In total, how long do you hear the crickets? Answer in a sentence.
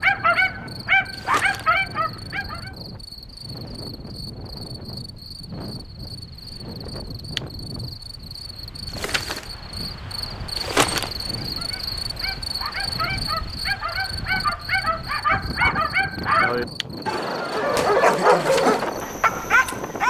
You can hear the crickets for 20 seconds altogether.